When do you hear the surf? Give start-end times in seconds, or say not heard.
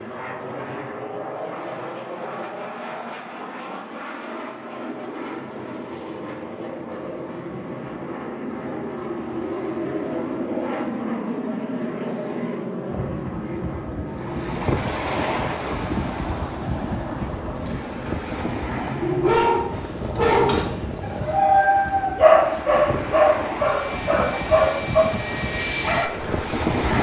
12.9-26.9.